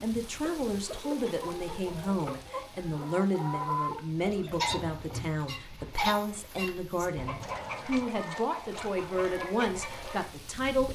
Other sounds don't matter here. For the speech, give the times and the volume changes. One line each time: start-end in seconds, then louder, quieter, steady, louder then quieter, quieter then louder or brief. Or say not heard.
0.0-10.9 steady.